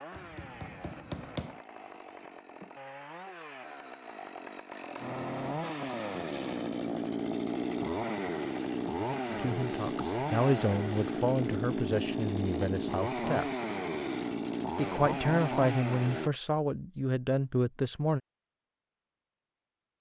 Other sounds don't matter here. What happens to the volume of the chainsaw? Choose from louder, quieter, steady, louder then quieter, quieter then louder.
louder.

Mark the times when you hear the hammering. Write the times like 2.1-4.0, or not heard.
0.1-1.6.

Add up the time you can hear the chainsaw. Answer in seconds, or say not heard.
16 s.